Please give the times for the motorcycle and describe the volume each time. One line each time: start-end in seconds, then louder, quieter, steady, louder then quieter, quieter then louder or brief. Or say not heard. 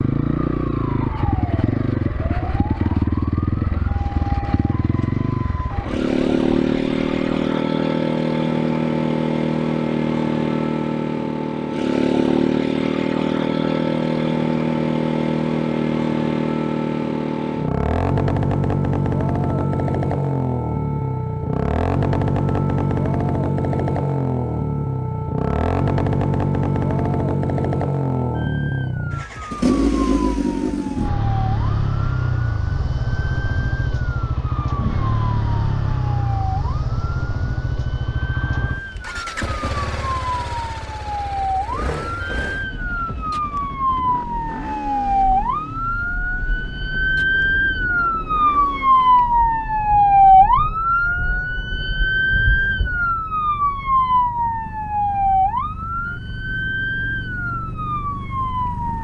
0.0-58.9 quieter.